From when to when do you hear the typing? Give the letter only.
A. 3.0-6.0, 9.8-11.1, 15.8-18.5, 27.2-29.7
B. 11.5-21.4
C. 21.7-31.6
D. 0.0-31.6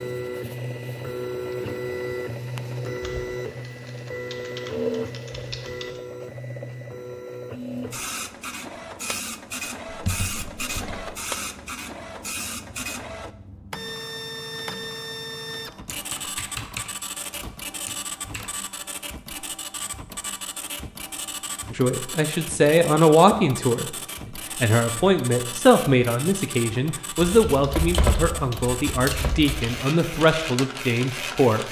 A.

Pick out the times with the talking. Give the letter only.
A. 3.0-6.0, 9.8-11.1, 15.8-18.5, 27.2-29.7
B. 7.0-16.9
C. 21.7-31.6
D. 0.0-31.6
C.